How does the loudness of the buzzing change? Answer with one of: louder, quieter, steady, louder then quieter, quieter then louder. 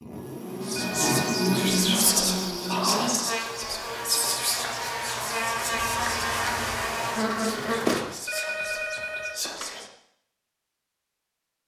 quieter then louder.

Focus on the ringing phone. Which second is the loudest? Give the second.
9 s.